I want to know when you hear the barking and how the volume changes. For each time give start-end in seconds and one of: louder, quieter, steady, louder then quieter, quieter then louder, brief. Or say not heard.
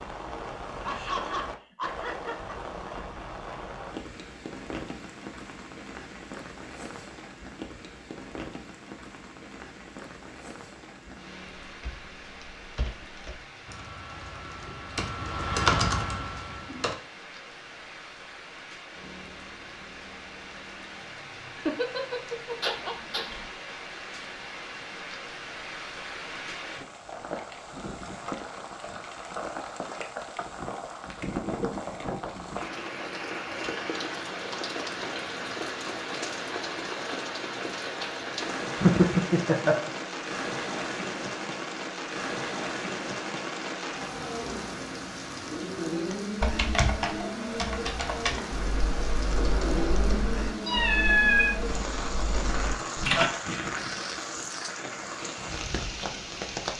not heard.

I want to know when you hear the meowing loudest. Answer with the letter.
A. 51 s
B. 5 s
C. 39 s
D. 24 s
A.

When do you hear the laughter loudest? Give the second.
39 s.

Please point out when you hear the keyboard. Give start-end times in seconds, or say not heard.
11.7-16.9, 46.1-53.3.